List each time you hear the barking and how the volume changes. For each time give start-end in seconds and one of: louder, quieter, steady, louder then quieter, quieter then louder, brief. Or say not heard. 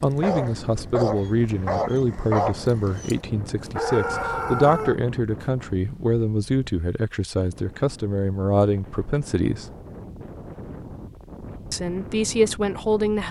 0.0-5.5 steady.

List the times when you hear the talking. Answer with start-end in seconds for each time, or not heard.
0.0-9.7, 11.7-13.2.